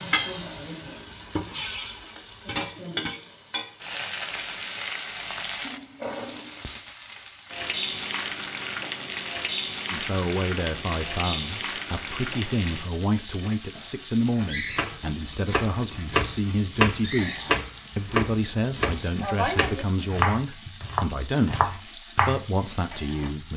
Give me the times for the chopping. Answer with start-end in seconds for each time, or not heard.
14.4-22.6.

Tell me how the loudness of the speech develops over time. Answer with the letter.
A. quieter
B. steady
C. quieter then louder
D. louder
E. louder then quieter
B.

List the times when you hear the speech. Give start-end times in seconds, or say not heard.
9.9-23.5.